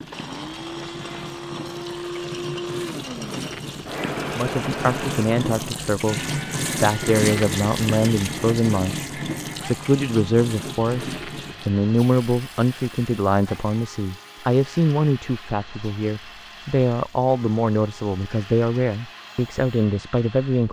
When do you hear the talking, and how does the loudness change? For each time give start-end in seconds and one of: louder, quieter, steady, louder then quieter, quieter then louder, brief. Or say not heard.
4.3-20.6 steady.